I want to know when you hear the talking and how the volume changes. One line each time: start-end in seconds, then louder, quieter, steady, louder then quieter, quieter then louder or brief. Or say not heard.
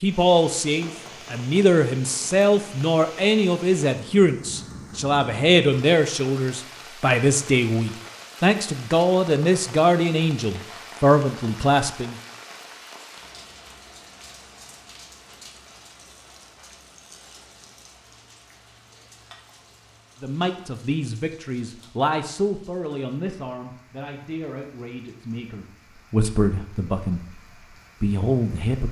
0.0-12.2 steady
20.2-28.8 quieter then louder.